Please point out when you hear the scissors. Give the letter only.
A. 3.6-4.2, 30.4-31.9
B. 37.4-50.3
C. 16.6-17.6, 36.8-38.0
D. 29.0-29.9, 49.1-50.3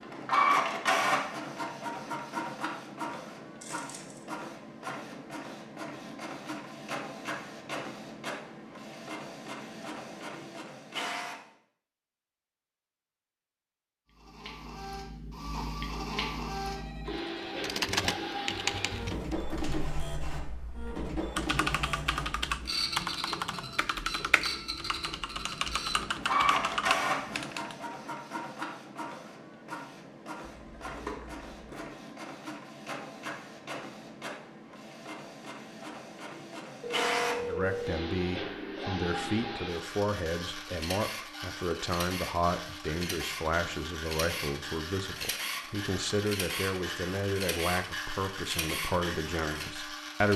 A.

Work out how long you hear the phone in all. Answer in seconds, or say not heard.
2 s.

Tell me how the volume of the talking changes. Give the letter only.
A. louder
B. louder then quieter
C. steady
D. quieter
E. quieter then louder
C.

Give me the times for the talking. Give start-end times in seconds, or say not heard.
37.4-50.3.